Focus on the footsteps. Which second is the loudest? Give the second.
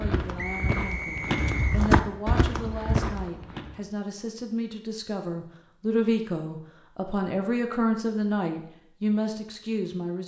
2 s.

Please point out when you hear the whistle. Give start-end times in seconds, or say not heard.
0.3-1.9.